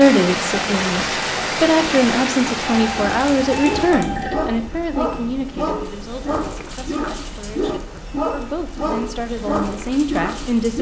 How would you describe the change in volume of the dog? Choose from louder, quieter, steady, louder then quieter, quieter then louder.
steady.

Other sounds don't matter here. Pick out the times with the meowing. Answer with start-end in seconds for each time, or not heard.
2.6-4.7.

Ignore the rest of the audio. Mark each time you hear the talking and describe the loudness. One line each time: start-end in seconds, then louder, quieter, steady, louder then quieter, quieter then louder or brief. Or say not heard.
0.0-10.7 quieter then louder.